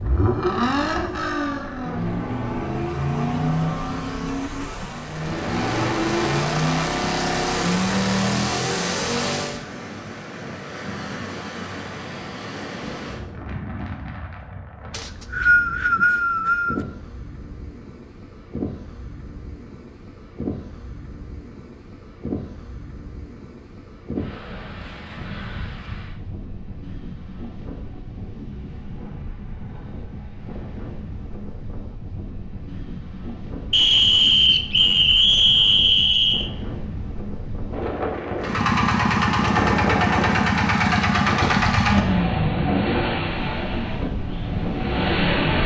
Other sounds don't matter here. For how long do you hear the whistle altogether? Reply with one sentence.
You can hear the whistle for 5 seconds altogether.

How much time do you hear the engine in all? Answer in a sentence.
The engine can be heard for 17 seconds in total.